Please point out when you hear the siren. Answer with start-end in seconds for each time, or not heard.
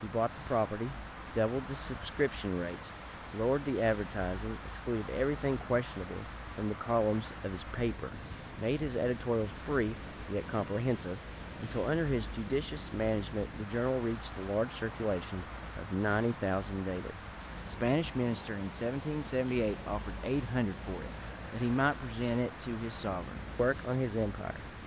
not heard.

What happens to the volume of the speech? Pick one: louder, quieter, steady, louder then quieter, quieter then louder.
steady.